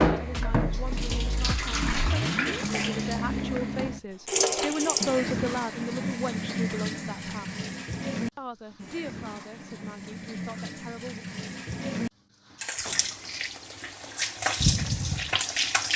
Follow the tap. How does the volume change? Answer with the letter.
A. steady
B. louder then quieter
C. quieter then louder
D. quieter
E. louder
C.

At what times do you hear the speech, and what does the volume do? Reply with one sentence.
You can hear the speech from 0.2 to 7.7 s, getting louder then quieter; and briefly from 8.3 to 11.2 s.